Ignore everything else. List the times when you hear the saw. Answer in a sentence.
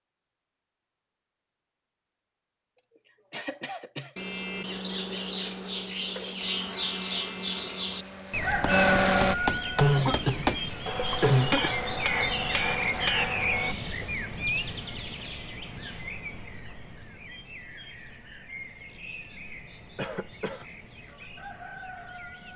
You can't hear the saw here.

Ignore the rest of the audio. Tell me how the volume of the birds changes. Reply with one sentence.
The volume of the birds goes down.